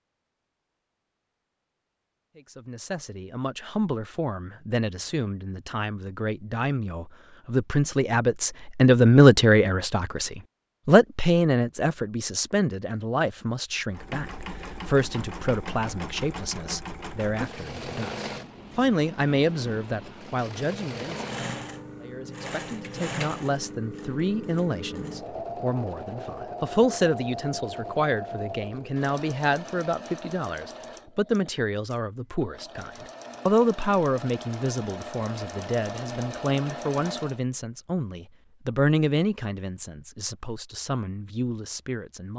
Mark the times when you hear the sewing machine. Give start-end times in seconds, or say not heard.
13.9-37.4.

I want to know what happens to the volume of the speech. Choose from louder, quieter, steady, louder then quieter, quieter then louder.
quieter.